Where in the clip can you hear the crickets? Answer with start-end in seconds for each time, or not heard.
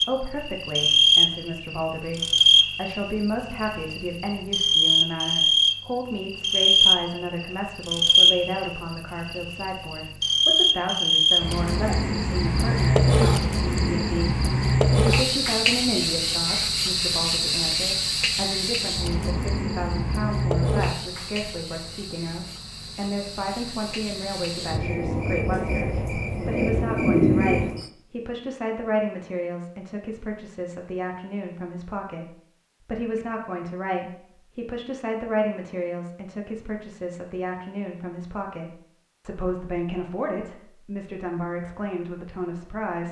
0.0-27.9.